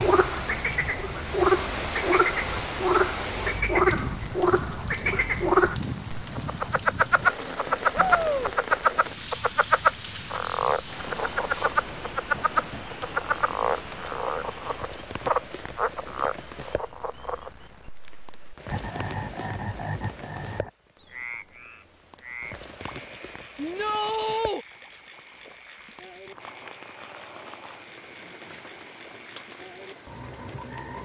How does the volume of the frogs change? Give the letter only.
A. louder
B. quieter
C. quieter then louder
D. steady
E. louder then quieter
B.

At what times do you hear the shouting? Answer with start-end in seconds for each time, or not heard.
7.9-8.5, 23.6-24.6.